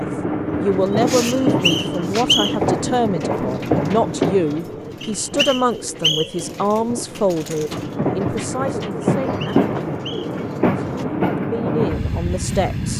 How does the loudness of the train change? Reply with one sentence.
The loudness of the train goes down, then up.